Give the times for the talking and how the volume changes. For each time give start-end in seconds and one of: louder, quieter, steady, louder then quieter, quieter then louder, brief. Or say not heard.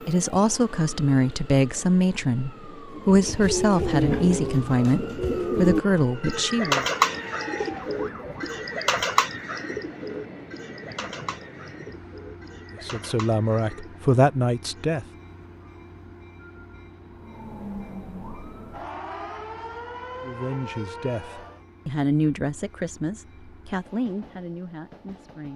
0.1-6.8 steady
12.8-15.1 brief
20.2-25.5 louder then quieter.